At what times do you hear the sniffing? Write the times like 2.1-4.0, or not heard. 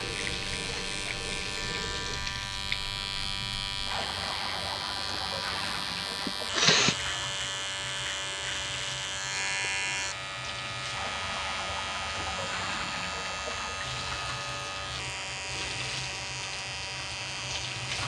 6.1-7.0.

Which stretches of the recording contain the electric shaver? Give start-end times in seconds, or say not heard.
0.0-18.0.